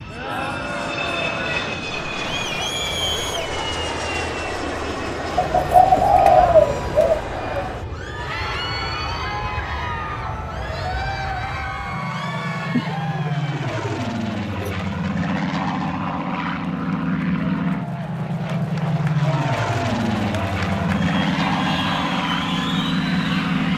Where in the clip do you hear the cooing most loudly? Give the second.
6 s.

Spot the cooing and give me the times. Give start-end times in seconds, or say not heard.
5.3-7.2, 12.7-14.8.